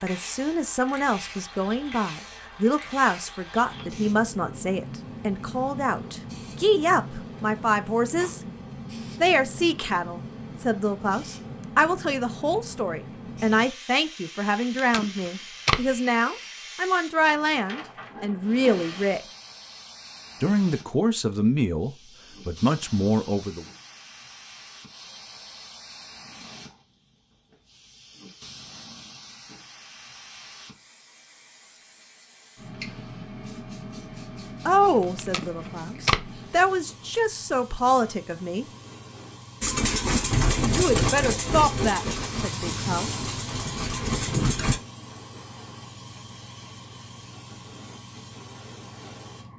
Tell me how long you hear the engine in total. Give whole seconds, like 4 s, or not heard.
5 s.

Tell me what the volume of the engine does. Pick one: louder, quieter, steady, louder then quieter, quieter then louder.
quieter then louder.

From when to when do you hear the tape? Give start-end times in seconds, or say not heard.
14.6-15.9, 35.0-36.3.